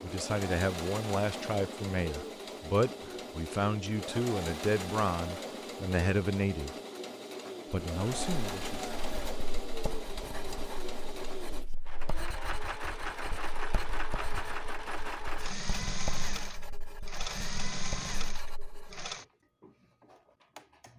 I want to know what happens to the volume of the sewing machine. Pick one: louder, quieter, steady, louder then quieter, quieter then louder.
steady.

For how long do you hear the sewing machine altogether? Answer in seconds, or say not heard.
21 s.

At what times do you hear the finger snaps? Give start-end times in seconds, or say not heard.
not heard.